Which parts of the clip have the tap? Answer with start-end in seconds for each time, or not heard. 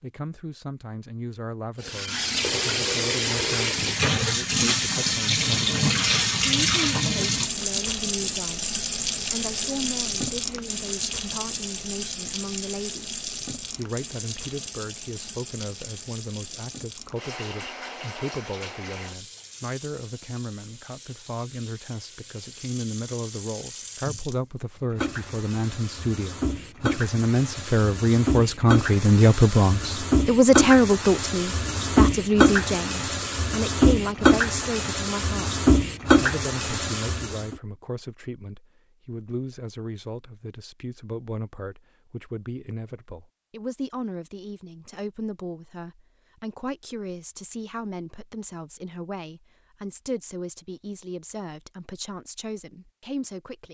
1.8-37.5.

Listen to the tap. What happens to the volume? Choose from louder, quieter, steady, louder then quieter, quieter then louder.
quieter then louder.